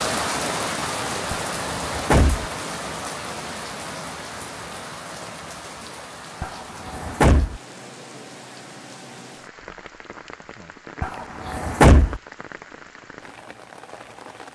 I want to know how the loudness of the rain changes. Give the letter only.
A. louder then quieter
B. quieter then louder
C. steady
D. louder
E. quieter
E.